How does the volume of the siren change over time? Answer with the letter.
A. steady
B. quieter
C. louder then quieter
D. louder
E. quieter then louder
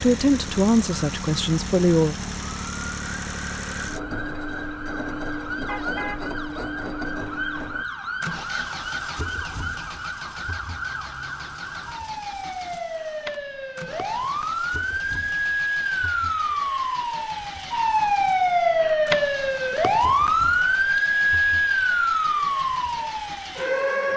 D.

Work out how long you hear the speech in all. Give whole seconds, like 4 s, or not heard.
2 s.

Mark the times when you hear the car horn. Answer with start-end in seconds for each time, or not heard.
5.7-6.3.